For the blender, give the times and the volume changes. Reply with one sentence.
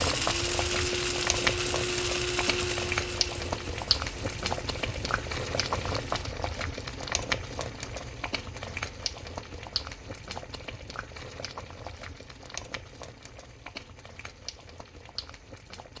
The blender can be heard from 0.0 to 6.2 s, getting quieter.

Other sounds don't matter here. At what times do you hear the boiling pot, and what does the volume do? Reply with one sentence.
You can hear the boiling pot from 0.0 to 15.9 s, getting quieter.